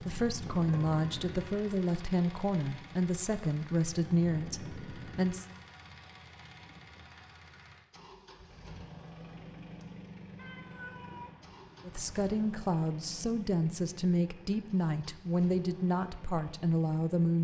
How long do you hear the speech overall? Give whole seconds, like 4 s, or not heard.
11 s.